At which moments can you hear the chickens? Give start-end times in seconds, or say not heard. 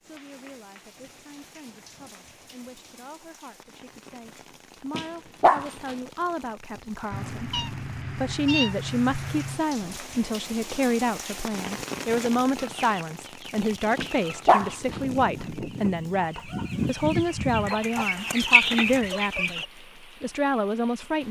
12.6-19.6.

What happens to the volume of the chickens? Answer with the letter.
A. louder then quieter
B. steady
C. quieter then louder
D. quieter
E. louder
E.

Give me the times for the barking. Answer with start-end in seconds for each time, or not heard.
4.9-6.0, 13.9-14.9.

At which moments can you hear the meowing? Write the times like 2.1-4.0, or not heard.
7.1-9.6.